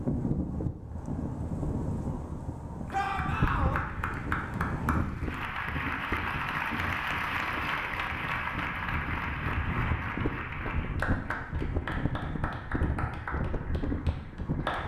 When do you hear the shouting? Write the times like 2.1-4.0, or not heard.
2.9-3.8.